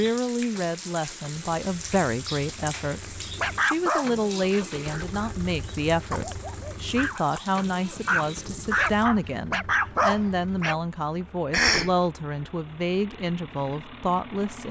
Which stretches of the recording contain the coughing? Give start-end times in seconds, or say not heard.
11.5-11.9.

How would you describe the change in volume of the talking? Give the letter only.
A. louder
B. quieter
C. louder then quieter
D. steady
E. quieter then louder
D.